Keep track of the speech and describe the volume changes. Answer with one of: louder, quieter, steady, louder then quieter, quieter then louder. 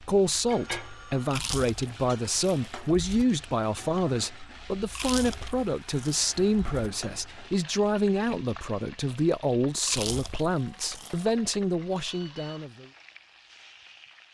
steady.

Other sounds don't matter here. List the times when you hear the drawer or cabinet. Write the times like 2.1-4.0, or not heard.
not heard.